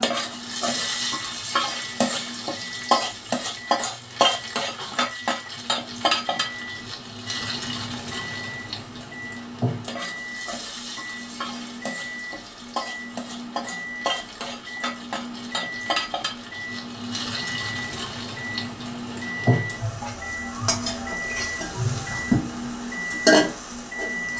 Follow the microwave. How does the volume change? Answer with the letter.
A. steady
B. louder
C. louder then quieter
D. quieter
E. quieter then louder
B.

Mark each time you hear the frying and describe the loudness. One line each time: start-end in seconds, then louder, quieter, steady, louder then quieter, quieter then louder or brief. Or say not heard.
0.0-24.3 quieter then louder.